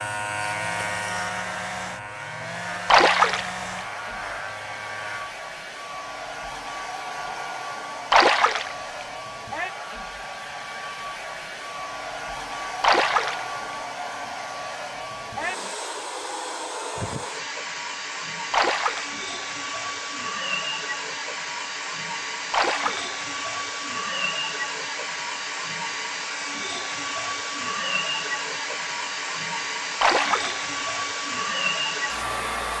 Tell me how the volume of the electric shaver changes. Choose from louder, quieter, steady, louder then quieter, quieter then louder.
quieter.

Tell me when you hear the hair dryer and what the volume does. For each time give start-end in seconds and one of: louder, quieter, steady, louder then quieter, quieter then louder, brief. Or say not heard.
0.0-32.7 louder.